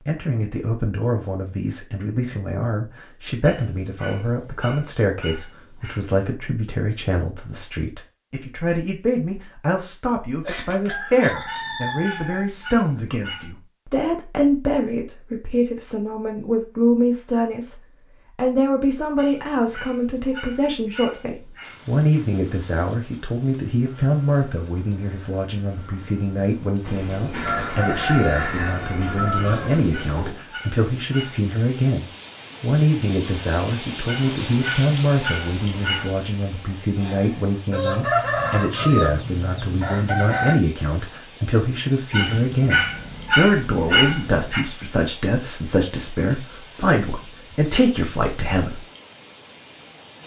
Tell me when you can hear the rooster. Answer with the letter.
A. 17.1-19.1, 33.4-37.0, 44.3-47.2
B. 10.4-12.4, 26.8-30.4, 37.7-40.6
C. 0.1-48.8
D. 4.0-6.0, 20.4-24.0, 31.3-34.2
B.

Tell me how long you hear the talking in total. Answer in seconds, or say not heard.
49 s.